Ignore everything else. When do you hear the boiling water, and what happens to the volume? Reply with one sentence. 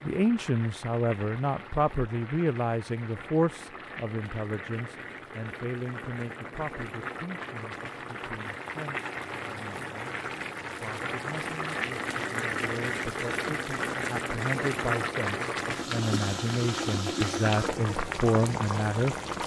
The boiling water can be heard from 0.0 to 19.4 s, getting louder.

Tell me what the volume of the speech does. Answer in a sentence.
The volume of the speech goes down, then up.